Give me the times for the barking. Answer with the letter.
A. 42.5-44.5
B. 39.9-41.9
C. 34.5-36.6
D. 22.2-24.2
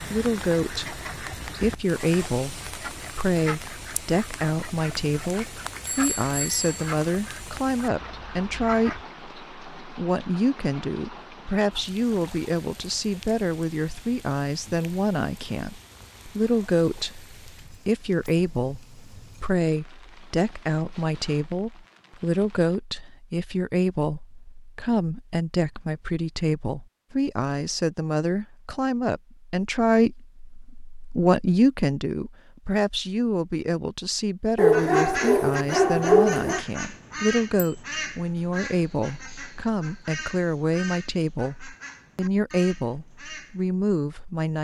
C.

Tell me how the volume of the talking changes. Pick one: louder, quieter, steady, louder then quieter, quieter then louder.
steady.